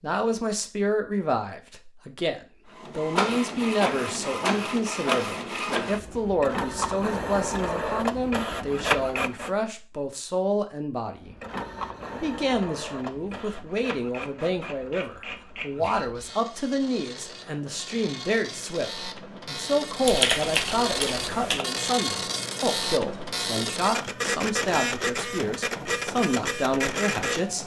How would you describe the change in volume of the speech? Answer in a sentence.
The volume of the speech stays about the same.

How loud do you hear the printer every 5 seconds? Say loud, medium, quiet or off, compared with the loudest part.
loud, loud, medium, medium, loud, loud.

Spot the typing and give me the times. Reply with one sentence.
You can hear the typing from 20.1 to 21.6 s.